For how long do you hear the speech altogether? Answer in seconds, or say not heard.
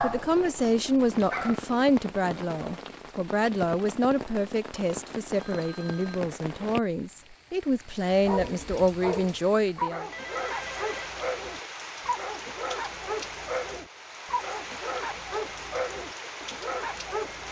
10 s.